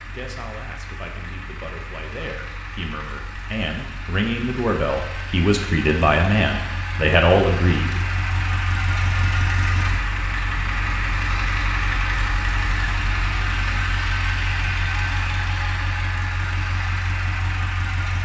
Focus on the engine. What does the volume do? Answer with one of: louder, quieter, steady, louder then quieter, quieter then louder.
louder.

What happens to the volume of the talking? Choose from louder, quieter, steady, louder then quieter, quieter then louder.
louder.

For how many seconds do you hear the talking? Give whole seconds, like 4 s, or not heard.
8 s.